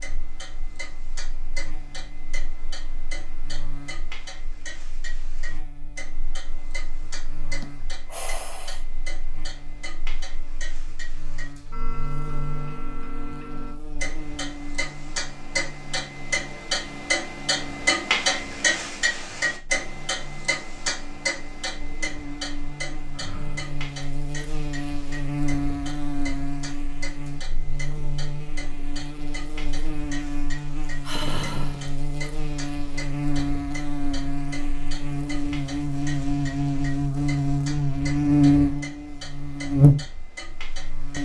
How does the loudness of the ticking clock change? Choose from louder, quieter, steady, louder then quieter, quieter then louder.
louder then quieter.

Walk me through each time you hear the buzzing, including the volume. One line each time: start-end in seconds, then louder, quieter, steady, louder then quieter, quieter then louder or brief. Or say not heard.
0.0-41.2 louder.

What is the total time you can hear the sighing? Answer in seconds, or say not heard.
3 s.